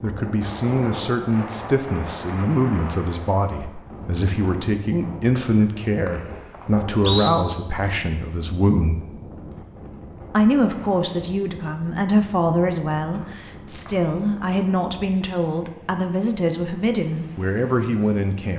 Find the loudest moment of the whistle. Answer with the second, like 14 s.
7 s.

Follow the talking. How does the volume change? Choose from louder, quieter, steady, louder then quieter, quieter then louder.
steady.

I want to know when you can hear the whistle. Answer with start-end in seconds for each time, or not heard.
5.3-7.3, 13.1-14.1.